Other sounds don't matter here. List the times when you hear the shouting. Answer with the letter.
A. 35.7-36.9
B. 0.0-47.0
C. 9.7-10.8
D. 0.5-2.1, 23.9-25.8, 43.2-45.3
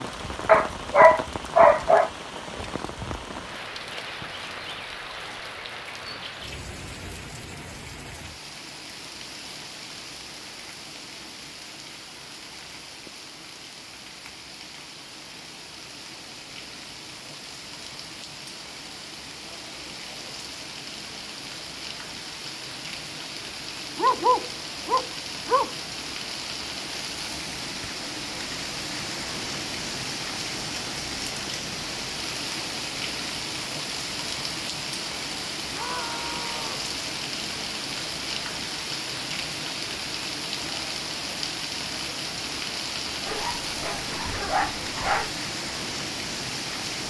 A.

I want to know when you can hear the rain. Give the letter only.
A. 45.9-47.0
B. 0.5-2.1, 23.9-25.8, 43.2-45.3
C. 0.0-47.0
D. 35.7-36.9
C.